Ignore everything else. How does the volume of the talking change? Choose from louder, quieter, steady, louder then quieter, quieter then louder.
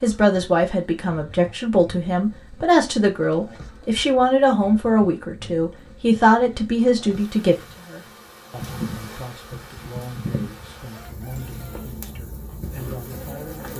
quieter.